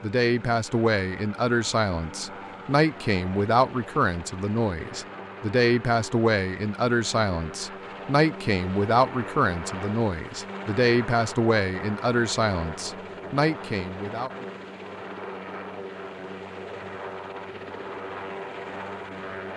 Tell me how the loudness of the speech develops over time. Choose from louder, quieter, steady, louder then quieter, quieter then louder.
steady.